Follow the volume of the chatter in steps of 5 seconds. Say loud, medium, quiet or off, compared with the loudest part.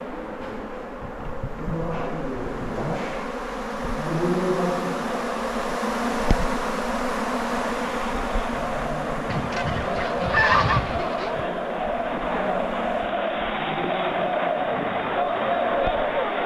off, medium, loud, loud.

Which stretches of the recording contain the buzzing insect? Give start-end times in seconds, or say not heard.
0.0-16.4.